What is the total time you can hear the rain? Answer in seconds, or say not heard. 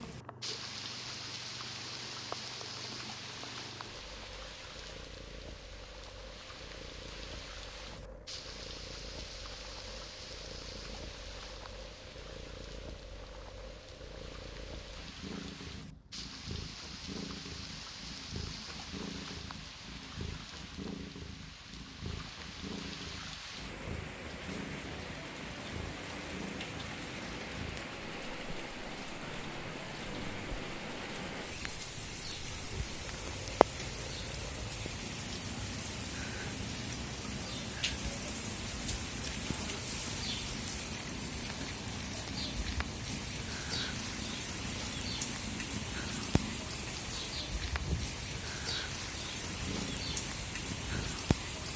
52 s.